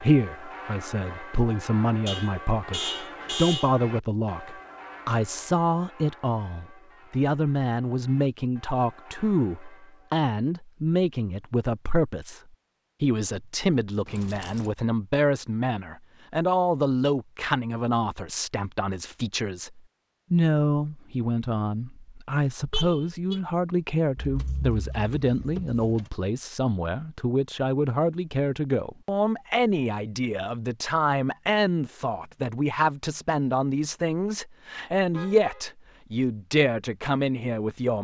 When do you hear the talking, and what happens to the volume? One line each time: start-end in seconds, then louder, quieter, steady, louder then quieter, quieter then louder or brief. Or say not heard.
0.0-12.4 steady
13.0-37.9 steady.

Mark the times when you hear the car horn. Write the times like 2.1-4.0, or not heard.
2.0-3.8, 22.7-23.4, 35.1-35.7.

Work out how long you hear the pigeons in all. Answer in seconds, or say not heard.
not heard.